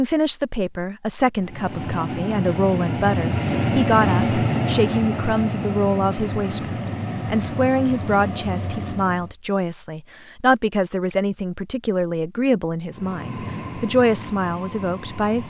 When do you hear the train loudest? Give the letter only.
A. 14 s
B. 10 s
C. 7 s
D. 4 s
D.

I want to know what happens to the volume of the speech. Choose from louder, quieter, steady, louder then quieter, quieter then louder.
steady.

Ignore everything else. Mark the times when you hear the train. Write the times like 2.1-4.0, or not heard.
1.4-9.3, 12.8-15.4.